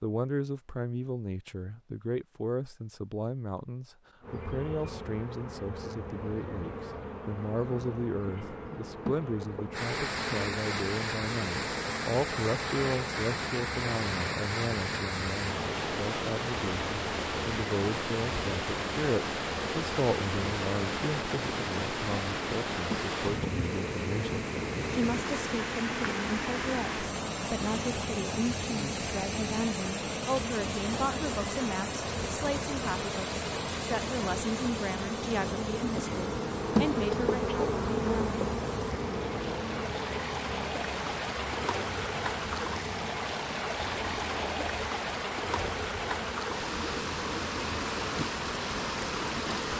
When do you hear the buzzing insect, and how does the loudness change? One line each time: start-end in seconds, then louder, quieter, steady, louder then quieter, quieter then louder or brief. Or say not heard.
4.2-49.7 louder then quieter.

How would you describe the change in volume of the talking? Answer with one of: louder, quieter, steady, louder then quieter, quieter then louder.
steady.